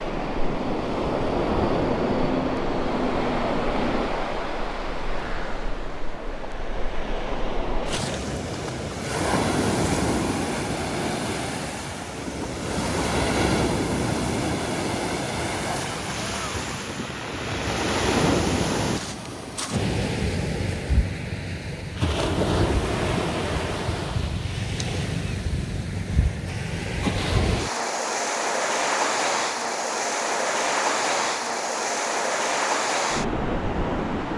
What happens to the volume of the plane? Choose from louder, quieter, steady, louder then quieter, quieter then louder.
steady.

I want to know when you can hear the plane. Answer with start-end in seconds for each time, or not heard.
0.0-4.1.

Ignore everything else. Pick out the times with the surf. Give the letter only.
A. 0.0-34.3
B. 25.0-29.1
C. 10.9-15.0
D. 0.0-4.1
A.